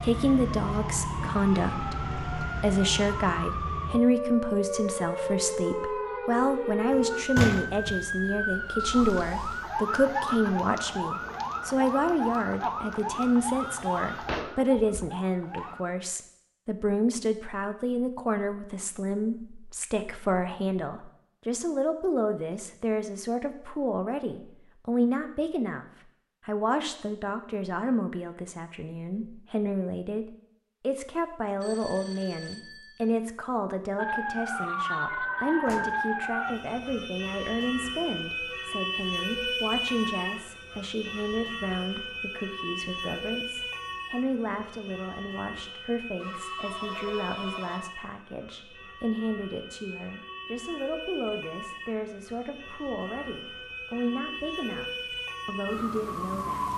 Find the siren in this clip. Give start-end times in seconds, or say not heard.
0.0-15.8, 34.0-56.7.